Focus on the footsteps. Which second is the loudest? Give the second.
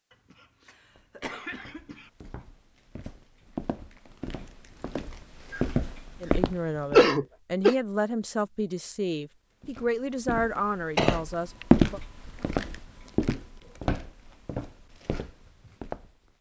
12 s.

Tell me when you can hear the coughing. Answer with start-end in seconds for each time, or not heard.
0.3-2.1, 6.9-7.8, 10.9-11.7.